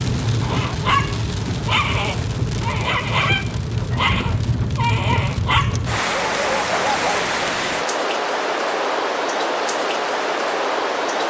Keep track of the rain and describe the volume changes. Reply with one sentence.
The loudness of the rain stays about the same.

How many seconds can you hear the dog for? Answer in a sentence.
The dog can be heard for 7 seconds in total.